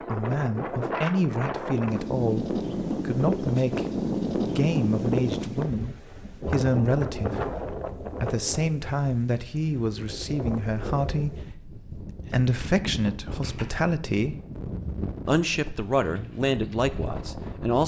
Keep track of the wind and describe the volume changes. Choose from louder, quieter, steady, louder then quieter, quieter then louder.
quieter.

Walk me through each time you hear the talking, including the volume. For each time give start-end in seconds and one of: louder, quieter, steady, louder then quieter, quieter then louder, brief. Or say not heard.
0.1-14.3 steady
15.2-17.8 brief.